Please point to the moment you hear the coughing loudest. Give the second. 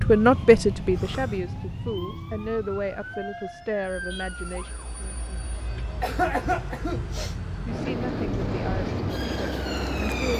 6 s.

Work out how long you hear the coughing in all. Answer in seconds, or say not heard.
2 s.